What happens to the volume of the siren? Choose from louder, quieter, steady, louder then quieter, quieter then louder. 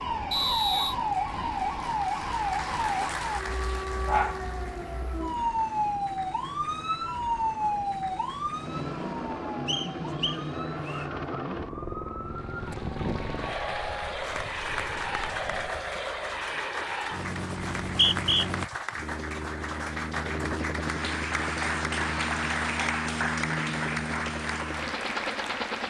quieter.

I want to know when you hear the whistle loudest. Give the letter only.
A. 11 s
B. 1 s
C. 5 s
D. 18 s
D.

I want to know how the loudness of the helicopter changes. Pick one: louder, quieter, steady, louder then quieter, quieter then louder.
louder.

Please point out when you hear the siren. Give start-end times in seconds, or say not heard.
0.0-15.8.